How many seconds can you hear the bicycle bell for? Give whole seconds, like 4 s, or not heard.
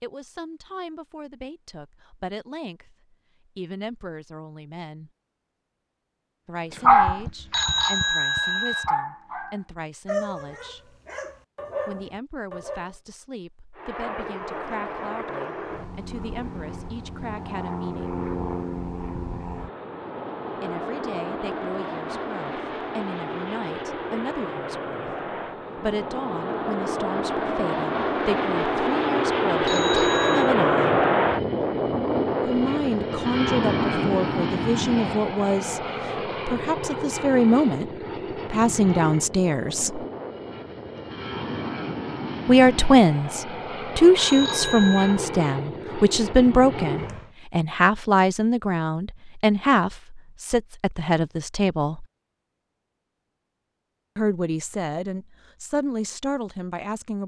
3 s.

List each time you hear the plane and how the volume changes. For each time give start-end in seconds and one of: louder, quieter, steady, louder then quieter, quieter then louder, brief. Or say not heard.
13.8-47.4 louder then quieter.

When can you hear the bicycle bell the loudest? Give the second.
8 s.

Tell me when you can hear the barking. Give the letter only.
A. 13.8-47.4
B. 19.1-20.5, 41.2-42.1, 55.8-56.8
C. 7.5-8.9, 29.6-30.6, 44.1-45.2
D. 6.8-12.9
D.